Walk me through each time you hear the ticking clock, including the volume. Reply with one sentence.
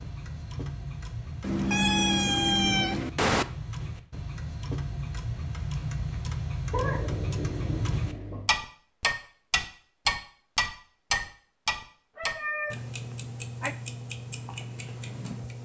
The ticking clock can be heard from 0.0 to 15.5 s, getting louder then quieter.